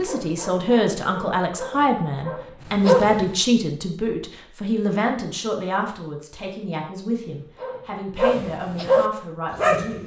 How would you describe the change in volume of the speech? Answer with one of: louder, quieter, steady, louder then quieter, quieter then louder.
quieter.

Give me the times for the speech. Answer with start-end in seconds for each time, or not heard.
0.0-10.0.